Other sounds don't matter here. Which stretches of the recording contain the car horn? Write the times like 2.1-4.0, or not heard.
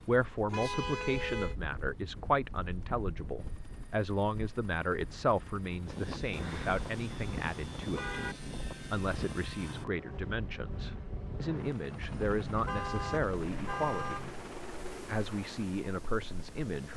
0.5-1.6, 6.3-8.3, 12.2-14.3.